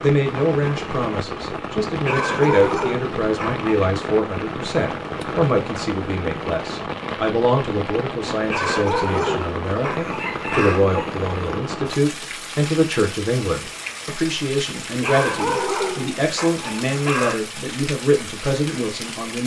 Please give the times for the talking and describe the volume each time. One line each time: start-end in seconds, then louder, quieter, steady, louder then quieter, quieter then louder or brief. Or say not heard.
0.0-19.4 steady.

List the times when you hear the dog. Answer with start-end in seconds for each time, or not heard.
2.0-3.6, 8.4-10.8, 15.0-17.4.